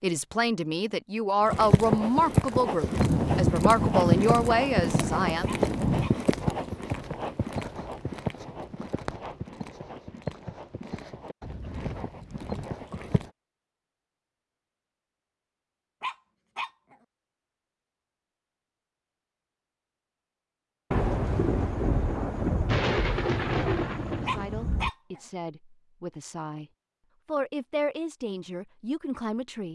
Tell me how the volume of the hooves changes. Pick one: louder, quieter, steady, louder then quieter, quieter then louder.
quieter.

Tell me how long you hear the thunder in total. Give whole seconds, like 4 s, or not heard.
7 s.